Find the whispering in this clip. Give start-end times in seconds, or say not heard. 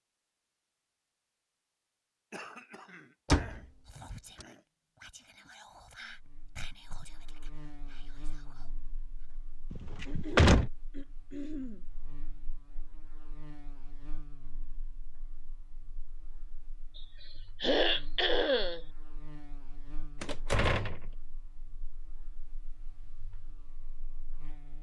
3.9-9.4.